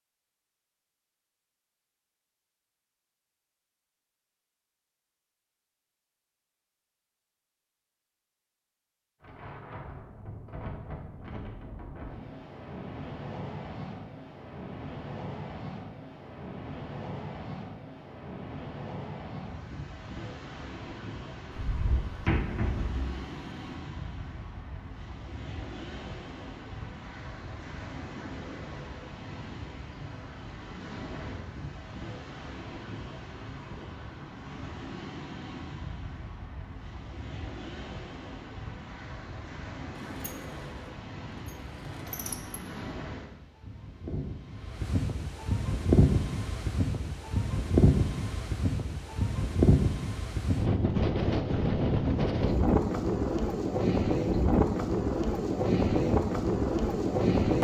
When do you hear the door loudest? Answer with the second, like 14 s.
22 s.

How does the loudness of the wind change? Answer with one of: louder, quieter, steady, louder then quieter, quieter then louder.
louder.